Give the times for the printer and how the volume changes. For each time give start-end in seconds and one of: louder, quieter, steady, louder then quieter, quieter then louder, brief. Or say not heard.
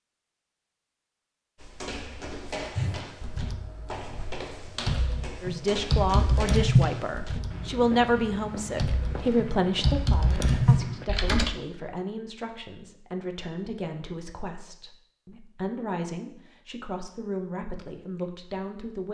not heard.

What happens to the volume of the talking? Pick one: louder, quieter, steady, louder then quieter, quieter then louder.
quieter.